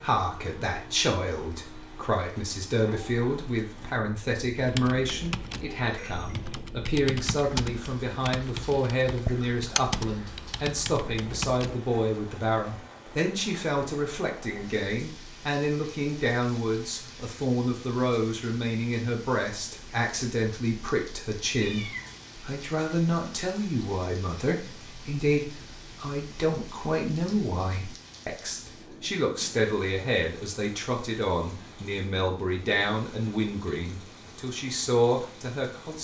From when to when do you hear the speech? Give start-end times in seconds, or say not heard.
0.0-36.0.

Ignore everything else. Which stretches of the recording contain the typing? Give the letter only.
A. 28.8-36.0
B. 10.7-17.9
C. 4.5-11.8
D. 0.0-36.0
C.